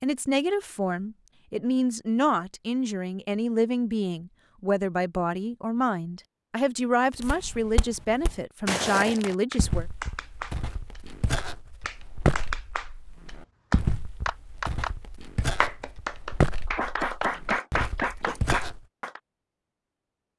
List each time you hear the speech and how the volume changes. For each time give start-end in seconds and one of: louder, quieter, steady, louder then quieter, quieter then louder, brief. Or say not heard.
0.0-9.8 steady.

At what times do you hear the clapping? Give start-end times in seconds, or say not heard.
9.2-19.2.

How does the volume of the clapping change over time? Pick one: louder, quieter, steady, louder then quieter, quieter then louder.
louder.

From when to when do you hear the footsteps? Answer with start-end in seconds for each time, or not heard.
7.2-18.9.